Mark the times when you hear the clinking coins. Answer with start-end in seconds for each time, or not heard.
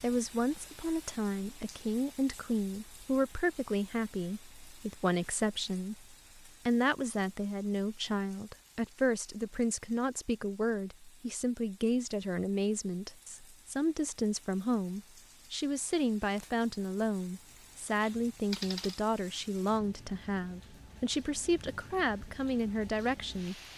18.0-19.0.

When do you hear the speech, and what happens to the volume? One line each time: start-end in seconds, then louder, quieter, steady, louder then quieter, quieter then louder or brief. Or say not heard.
0.0-23.6 steady.